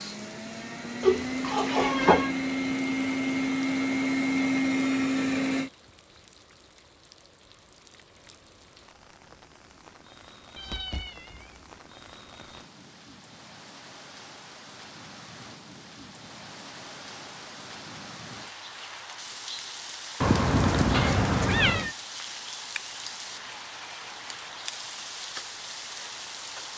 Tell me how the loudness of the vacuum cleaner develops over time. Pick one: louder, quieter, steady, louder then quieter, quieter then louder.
louder.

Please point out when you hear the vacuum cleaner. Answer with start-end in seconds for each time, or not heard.
0.0-5.7.